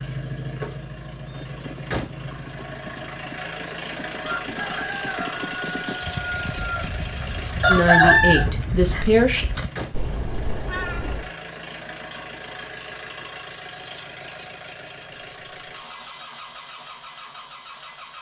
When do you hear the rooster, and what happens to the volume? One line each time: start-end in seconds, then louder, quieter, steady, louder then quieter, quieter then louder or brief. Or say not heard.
4.2-8.4 louder.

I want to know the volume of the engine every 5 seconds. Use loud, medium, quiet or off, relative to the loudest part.
loud, loud, medium, medium.